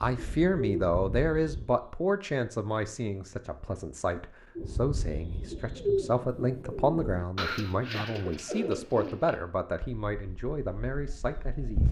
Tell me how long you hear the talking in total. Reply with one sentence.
You can hear the talking for 12 seconds altogether.